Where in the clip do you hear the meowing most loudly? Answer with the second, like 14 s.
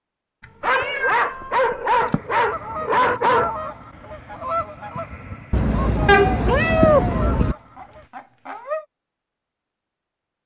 7 s.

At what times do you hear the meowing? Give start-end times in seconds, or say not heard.
0.4-2.2, 5.5-7.5.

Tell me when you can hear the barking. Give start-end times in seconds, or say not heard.
0.6-3.5, 6.0-8.8.